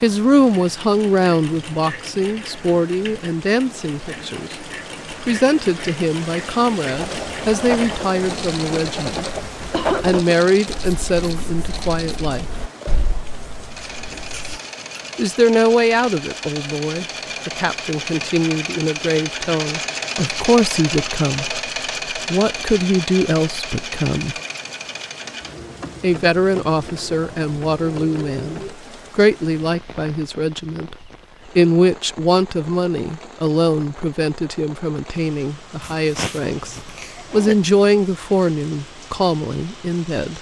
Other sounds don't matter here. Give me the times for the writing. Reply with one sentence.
You can hear the writing from 6.9 to 14.6 s.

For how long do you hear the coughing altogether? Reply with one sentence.
You can hear the coughing for 3 seconds altogether.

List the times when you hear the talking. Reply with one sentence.
The talking can be heard from 0.0 to 9.3 s, from 10.0 to 12.4 s, from 15.2 to 24.4 s, from 26.0 to 30.9 s and from 31.6 to 40.3 s.